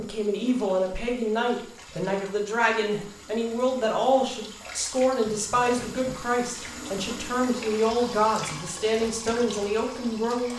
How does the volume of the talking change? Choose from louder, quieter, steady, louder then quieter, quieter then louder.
steady.